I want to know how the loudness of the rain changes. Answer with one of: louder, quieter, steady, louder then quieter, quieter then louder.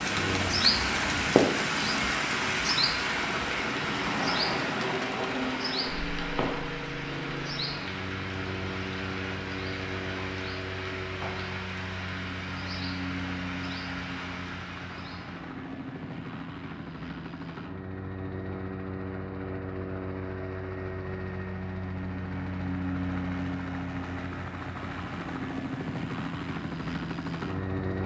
quieter.